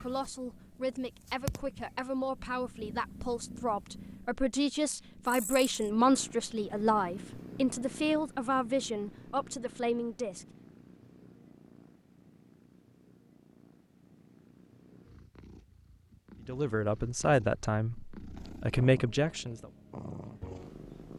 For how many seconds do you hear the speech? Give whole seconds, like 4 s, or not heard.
14 s.